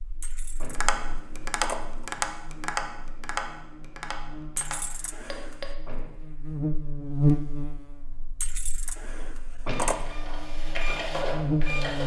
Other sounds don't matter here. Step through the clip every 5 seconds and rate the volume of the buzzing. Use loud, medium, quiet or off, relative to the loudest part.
quiet, loud, loud.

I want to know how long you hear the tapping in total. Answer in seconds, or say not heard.
5 s.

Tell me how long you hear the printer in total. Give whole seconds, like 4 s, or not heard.
2 s.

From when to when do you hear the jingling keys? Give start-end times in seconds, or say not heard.
0.2-2.0, 4.5-5.5, 8.4-10.1.